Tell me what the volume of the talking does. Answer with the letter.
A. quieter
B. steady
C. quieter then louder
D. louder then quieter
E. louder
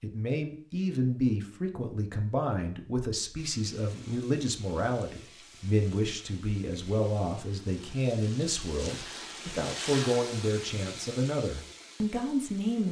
B.